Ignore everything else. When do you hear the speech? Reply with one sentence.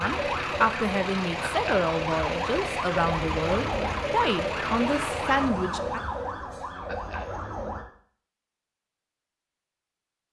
You can hear the speech from 0.0 to 6.0 s.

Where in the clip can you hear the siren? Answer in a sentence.
The siren can be heard from 0.0 to 7.9 s.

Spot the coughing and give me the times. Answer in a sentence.
You can hear the coughing from 1.4 to 1.8 s and from 6.8 to 7.2 s.